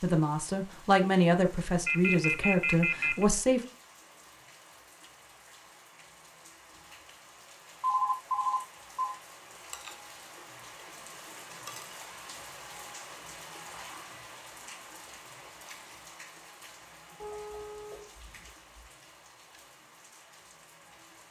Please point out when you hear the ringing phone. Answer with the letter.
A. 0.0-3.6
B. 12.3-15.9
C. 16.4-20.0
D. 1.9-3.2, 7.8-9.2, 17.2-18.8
D.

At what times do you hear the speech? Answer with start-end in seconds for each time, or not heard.
0.0-3.6.